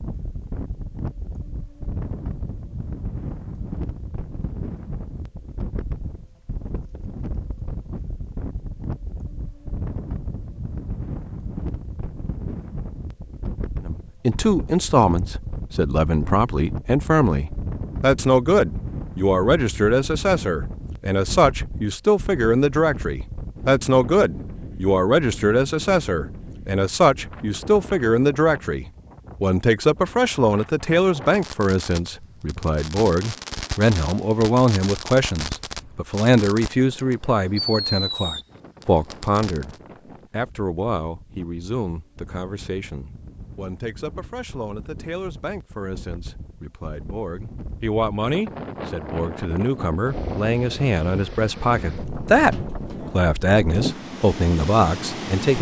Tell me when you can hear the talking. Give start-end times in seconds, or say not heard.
13.8-55.5.